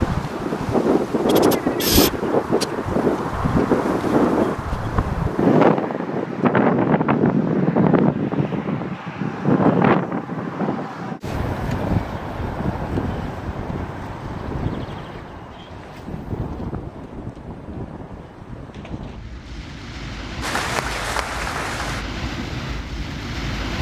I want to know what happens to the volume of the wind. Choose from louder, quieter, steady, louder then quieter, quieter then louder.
quieter.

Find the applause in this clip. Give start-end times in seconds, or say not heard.
20.4-22.1.